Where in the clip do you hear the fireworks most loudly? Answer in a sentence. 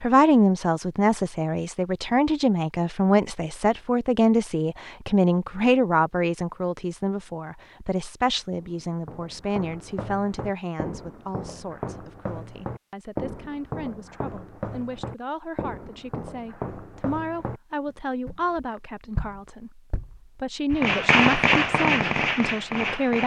The volume of the fireworks peaks at 21 seconds.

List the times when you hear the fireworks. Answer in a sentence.
You can hear the fireworks from 20.8 to 23.2 s.